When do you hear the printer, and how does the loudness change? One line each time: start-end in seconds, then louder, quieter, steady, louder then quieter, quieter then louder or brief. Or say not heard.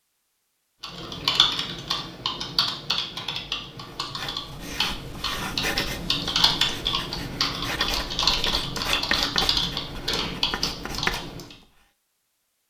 not heard.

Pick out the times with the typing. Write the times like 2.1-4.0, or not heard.
0.8-11.6.